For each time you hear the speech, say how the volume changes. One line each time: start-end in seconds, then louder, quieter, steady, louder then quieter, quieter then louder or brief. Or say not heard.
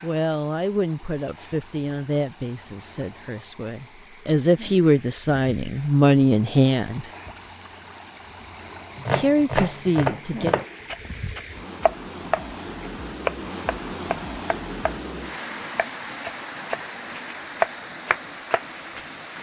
0.0-7.0 quieter then louder
9.1-10.6 brief.